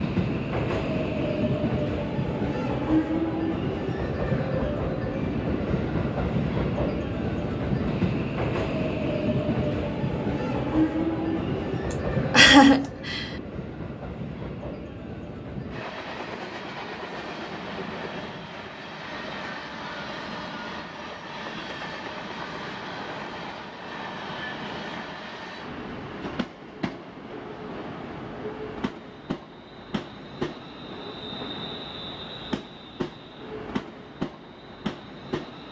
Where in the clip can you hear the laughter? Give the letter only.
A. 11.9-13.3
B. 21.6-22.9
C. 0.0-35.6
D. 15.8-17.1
A.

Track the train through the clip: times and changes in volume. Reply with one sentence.
The train can be heard from 0.0 to 35.6 s, getting quieter.